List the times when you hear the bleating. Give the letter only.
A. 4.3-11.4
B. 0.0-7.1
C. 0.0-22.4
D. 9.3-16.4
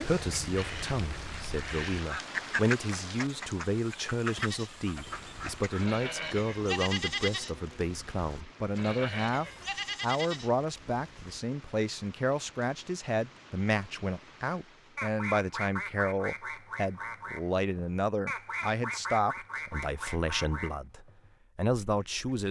A.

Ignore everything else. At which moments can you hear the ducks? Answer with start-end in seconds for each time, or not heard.
0.0-5.8, 14.9-22.4.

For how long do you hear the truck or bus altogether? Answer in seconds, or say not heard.
not heard.